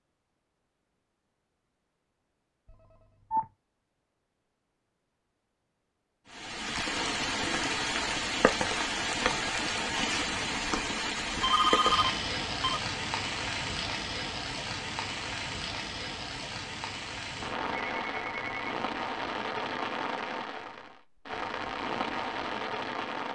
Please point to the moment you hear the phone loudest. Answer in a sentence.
The volume of the phone peaks at 12 seconds.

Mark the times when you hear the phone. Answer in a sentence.
The phone can be heard from 2.6 to 3.5 s, from 11.3 to 12.8 s and from 17.7 to 18.8 s.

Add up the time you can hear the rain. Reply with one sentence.
The rain can be heard for 17 seconds in total.